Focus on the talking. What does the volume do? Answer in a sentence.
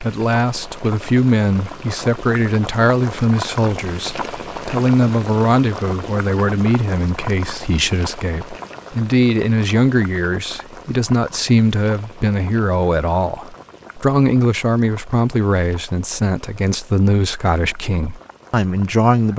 The loudness of the talking stays about the same.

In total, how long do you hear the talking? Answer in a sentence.
The talking can be heard for 19 seconds in total.